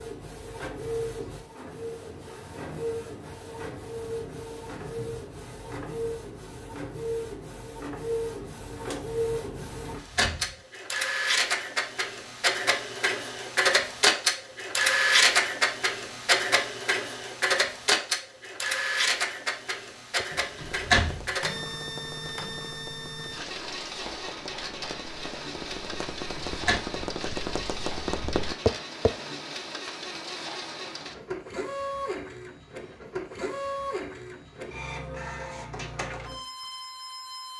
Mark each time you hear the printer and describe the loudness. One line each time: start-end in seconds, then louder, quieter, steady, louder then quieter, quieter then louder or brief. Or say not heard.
0.0-37.5 louder then quieter.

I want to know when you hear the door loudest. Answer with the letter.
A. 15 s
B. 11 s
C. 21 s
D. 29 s
C.